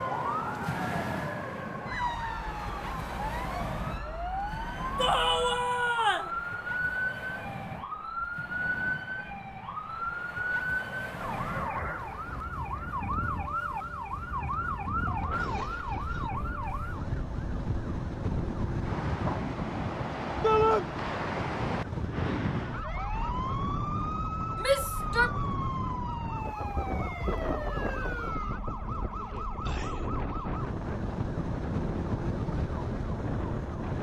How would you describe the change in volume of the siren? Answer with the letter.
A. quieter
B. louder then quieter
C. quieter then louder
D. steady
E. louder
D.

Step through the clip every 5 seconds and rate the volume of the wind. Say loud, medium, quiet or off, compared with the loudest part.
loud, medium, medium, loud, loud, loud, loud.